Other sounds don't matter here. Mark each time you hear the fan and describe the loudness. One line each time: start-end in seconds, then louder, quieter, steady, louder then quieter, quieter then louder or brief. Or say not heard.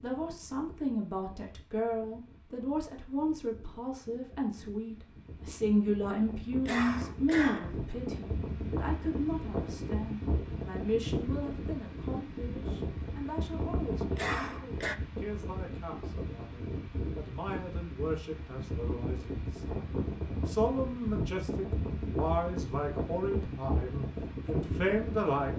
0.0-25.5 louder.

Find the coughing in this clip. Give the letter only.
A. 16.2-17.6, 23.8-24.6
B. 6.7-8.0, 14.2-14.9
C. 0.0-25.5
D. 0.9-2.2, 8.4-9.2
B.